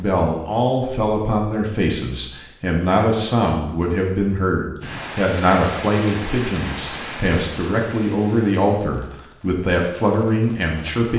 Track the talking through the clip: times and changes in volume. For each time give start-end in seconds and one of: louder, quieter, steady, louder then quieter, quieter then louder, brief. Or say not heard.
0.0-11.1 steady.